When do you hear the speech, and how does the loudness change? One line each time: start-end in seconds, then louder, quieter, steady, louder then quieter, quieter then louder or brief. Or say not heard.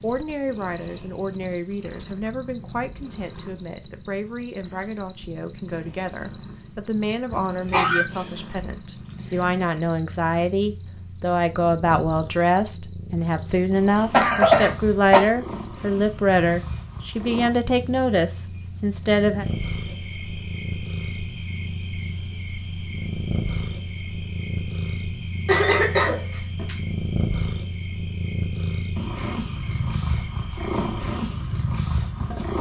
0.0-19.4 louder.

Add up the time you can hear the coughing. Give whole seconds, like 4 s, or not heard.
3 s.